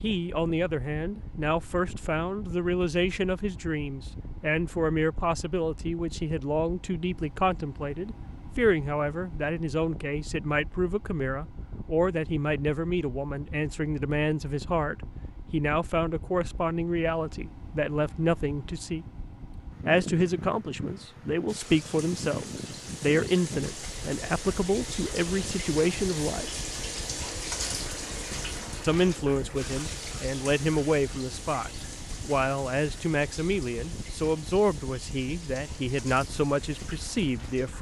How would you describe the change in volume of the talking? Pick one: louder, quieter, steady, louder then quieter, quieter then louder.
steady.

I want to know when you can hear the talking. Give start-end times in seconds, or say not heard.
0.0-19.1, 19.9-26.5, 28.8-37.7.